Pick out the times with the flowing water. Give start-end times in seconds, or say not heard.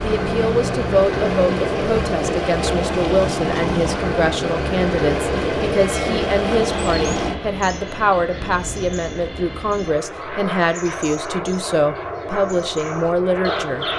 0.0-7.4.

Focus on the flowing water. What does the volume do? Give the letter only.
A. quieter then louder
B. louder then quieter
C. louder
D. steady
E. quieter
D.